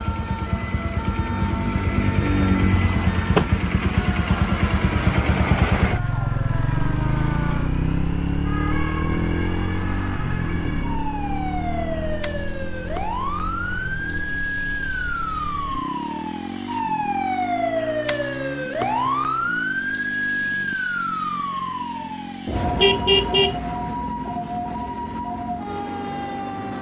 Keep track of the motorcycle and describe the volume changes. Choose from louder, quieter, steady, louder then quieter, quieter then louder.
quieter.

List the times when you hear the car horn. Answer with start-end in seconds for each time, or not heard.
22.4-23.6.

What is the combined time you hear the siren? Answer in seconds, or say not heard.
27 s.